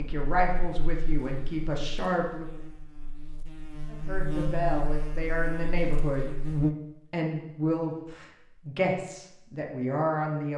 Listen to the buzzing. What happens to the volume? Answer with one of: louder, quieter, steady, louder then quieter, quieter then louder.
louder then quieter.